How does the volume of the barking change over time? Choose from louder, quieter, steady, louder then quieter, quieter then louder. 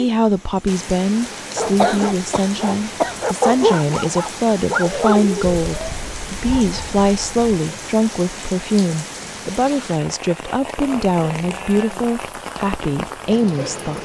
louder then quieter.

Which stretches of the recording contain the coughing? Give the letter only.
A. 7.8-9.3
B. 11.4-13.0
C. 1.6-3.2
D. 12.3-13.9
C.